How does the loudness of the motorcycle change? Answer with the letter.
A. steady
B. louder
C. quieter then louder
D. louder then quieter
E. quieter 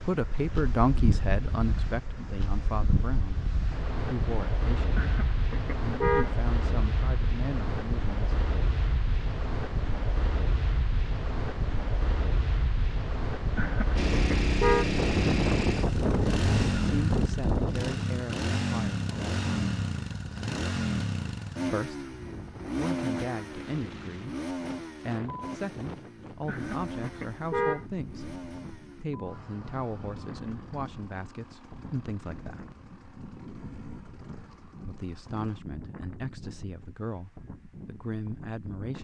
E.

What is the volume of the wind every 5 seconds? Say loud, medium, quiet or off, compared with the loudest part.
medium, medium, medium, loud, quiet, quiet, quiet, quiet.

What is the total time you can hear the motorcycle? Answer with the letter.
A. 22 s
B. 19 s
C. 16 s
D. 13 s
A.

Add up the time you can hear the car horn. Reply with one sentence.
The car horn can be heard for 4 seconds in total.